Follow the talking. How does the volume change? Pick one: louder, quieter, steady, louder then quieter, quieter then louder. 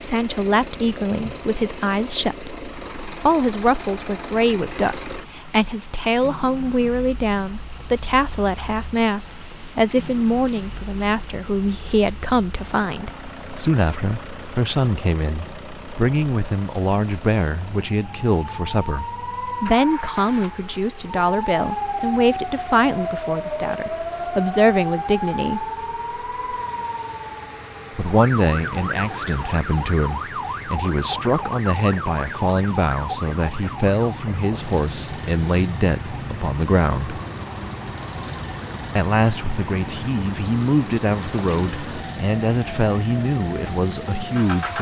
steady.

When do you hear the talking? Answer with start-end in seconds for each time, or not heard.
0.0-25.7, 27.9-37.2, 39.0-44.7.